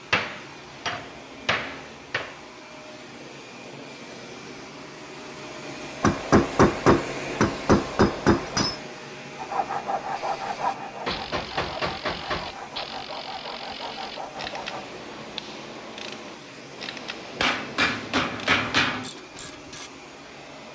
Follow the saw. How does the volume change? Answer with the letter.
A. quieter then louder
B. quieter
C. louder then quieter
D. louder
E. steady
B.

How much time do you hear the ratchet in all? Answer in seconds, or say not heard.
10 s.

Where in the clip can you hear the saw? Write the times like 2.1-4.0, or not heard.
9.3-14.8.